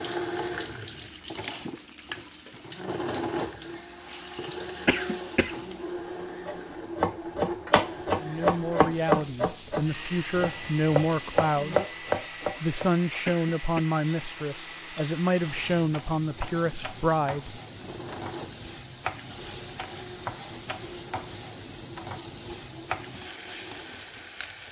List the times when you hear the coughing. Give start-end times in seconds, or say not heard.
4.8-5.5, 13.2-13.8.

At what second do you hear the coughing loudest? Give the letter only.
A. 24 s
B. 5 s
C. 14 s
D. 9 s
B.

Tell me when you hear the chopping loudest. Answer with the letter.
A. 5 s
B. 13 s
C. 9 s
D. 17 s
C.